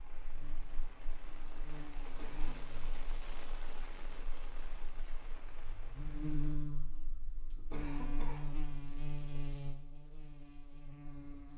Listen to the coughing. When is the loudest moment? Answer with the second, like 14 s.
8 s.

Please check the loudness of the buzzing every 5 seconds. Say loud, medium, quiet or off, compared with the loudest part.
quiet, loud, medium.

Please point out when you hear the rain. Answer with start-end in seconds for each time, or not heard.
0.0-6.5.